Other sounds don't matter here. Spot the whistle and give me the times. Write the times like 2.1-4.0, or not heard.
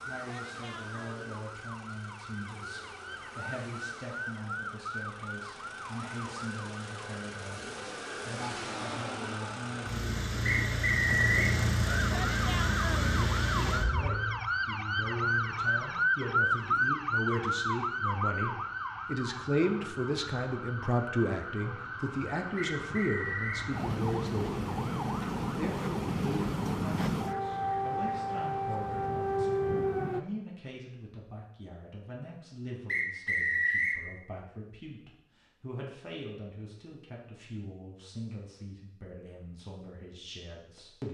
10.4-11.6, 22.6-23.7, 32.9-34.0.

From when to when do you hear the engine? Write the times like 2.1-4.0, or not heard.
0.0-14.5.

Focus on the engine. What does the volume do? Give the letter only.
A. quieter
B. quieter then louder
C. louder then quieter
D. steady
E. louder
E.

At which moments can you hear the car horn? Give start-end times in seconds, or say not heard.
not heard.